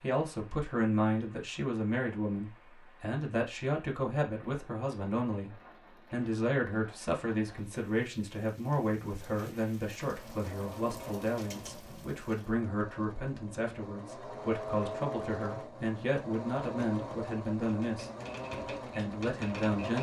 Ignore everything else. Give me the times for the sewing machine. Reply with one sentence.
The sewing machine can be heard from 10.0 to 19.9 s.